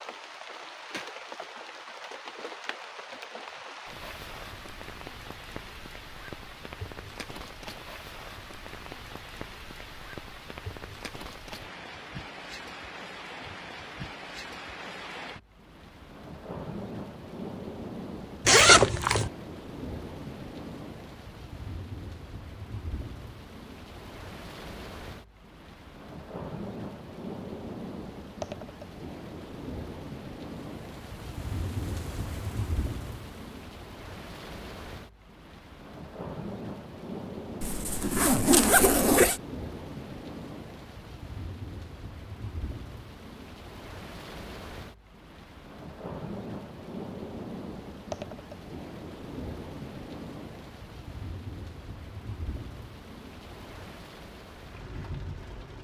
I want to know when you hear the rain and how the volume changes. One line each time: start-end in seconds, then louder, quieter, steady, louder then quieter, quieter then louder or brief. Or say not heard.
0.0-55.7 steady.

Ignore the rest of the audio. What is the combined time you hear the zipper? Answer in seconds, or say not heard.
3 s.